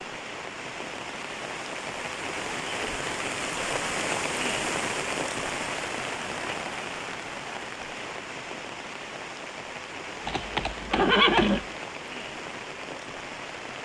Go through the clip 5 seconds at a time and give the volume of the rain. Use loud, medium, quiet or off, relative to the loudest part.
loud, loud, medium.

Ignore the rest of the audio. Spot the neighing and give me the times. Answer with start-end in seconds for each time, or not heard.
10.2-11.7.